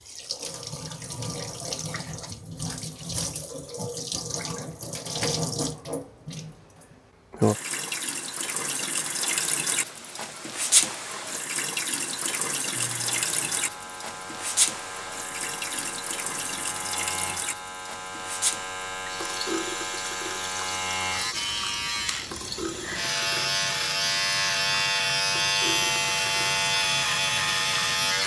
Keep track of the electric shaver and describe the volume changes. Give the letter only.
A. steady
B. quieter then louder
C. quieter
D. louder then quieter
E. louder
E.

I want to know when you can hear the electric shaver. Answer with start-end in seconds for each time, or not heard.
12.7-28.2.